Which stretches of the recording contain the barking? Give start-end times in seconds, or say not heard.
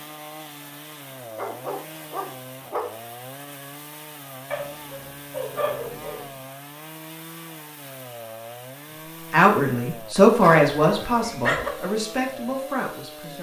1.4-2.9, 4.5-6.2, 10.4-11.7.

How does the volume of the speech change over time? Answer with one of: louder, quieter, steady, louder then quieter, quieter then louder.
quieter.